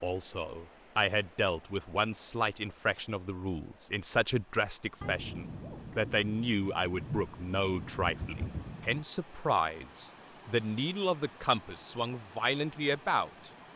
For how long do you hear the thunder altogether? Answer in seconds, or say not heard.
4 s.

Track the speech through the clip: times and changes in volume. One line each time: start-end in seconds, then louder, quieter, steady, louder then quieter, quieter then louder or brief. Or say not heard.
0.0-13.5 steady.